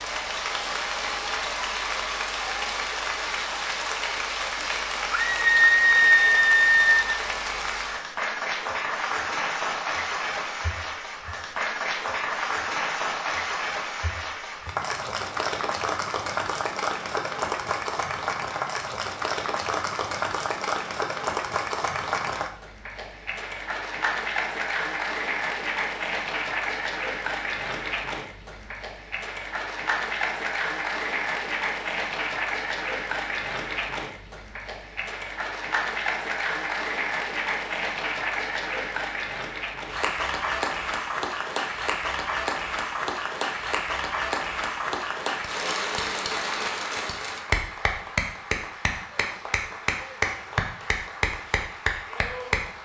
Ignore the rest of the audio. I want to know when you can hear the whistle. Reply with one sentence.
You can't hear the whistle here.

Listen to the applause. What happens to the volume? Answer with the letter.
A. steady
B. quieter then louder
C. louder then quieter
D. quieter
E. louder
A.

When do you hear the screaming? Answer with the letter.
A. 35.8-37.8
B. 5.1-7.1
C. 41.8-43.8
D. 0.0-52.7
B.